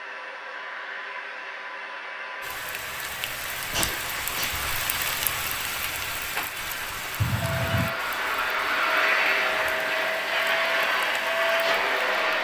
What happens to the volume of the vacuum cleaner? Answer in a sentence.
The volume of the vacuum cleaner goes up.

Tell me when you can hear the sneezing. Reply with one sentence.
You can hear the sneezing from 3.7 to 4.5 s and from 7.2 to 7.8 s.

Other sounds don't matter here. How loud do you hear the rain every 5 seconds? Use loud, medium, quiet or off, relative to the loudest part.
loud, loud, medium.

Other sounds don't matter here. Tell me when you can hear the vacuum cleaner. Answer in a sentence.
You can hear the vacuum cleaner from 0.0 to 12.3 s.